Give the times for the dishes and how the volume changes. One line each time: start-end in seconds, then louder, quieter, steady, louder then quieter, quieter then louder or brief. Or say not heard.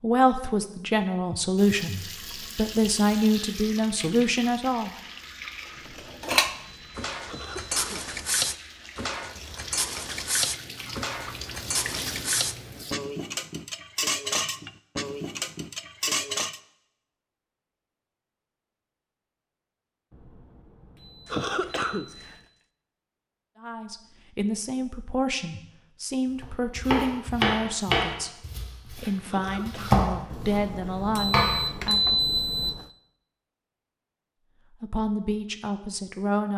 5.8-16.6 steady.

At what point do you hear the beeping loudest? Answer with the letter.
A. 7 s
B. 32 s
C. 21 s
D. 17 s
B.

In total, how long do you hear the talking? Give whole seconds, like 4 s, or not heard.
15 s.